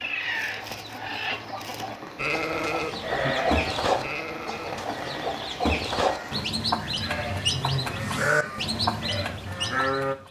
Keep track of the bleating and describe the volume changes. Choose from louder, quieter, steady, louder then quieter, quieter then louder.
quieter then louder.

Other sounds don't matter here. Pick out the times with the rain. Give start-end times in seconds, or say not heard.
0.0-6.5.